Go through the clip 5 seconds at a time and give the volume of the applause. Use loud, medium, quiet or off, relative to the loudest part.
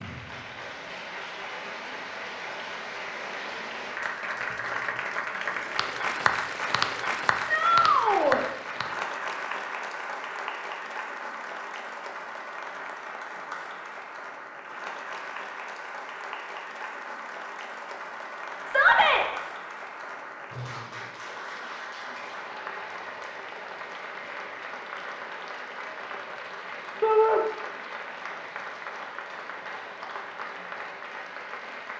medium, loud, medium, medium, medium, medium, medium.